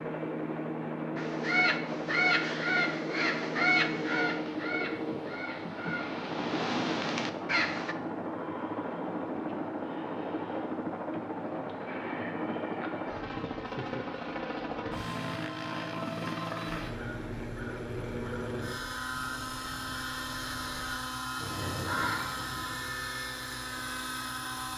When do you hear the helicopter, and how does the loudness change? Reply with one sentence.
The helicopter can be heard from 0.0 to 24.7 s, at a steady volume.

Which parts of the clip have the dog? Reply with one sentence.
You can't hear the dog here.